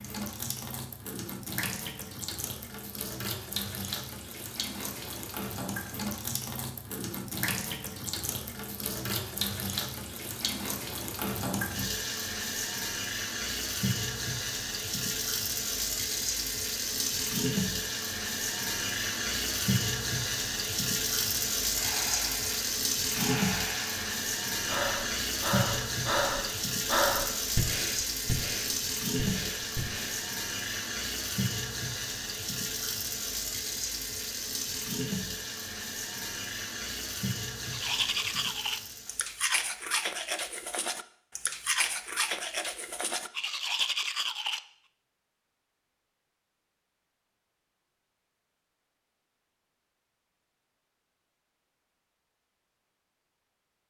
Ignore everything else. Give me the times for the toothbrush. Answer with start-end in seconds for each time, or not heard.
37.6-44.6.